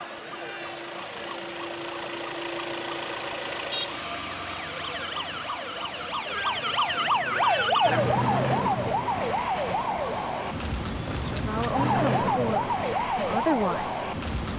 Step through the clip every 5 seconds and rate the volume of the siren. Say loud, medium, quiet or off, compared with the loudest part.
quiet, loud, loud.